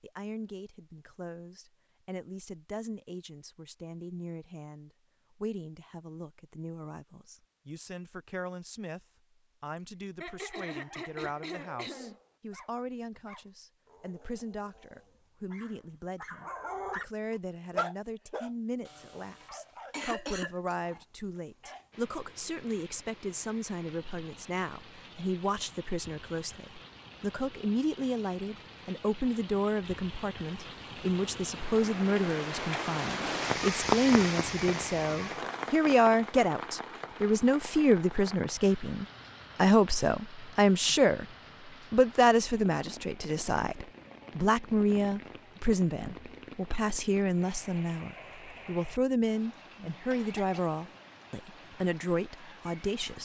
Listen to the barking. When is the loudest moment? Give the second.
18 s.